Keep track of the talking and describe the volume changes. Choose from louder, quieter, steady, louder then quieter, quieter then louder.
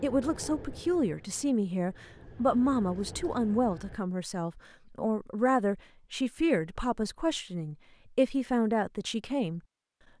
steady.